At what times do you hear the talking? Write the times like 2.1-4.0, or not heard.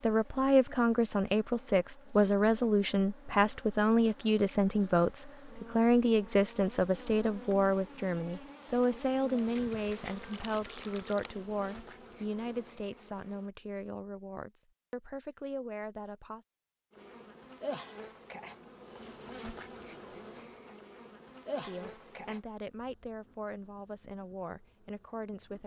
0.0-16.4, 21.6-25.6.